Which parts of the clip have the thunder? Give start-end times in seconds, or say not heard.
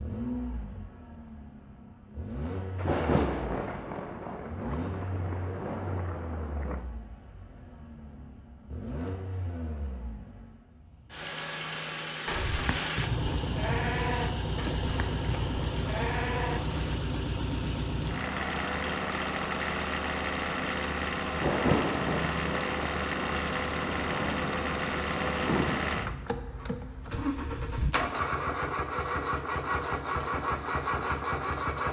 2.8-6.8, 21.4-25.9.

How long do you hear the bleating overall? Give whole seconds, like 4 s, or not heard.
5 s.